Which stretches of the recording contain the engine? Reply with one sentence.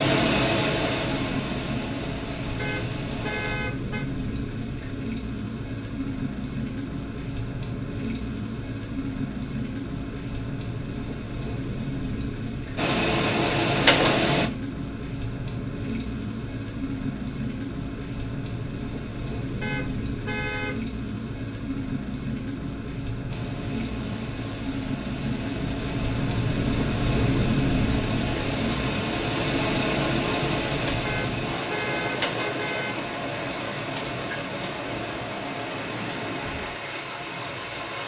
You can hear the engine from 0.0 to 3.5 s, from 12.8 to 14.5 s and from 23.2 to 38.0 s.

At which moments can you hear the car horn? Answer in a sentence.
The car horn can be heard from 2.5 to 4.0 s, from 19.6 to 20.9 s and from 31.1 to 33.0 s.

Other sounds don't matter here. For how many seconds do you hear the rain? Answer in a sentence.
The rain can be heard for 38 seconds in total.